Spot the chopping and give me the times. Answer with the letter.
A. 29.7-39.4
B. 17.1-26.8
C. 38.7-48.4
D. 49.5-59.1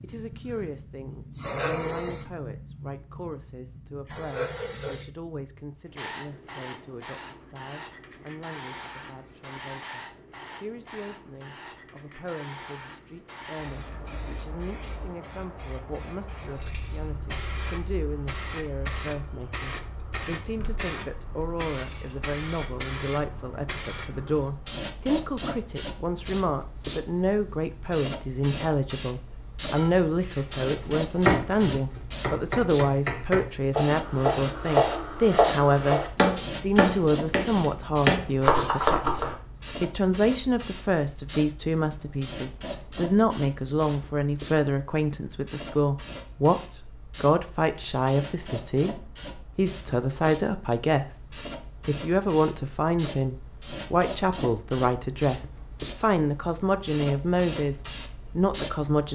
A.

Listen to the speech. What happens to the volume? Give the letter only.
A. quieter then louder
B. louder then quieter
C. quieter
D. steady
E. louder
E.